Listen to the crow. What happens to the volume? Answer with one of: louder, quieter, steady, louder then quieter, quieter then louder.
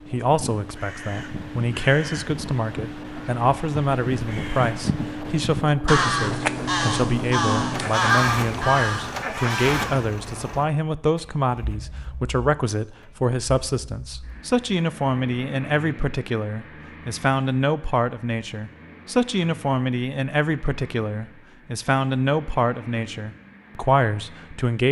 louder.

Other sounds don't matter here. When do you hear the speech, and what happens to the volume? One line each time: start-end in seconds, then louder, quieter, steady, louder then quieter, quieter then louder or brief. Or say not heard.
0.1-24.8 steady.